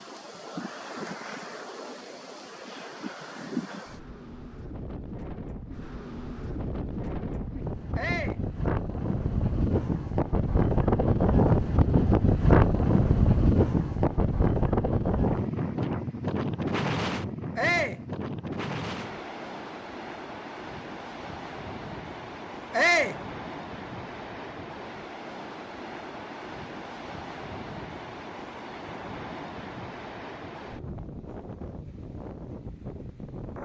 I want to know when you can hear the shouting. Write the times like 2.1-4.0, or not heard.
8.0-8.4, 17.6-18.0, 22.7-23.2.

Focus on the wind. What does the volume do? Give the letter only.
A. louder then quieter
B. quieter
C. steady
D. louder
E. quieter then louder
A.